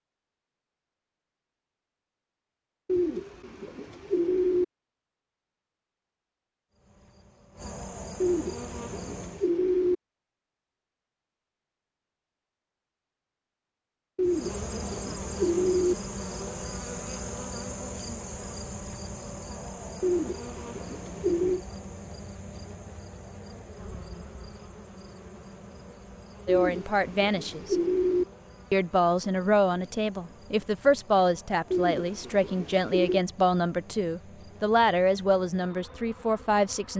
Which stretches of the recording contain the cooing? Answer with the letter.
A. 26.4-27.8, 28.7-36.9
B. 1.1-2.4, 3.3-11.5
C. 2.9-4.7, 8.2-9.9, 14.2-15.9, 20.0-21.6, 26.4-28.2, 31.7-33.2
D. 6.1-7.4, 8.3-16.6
C.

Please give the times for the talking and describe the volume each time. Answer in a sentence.
You can hear the talking briefly from 26.4 to 27.8 s; and from 28.7 to 36.9 s, at a steady volume.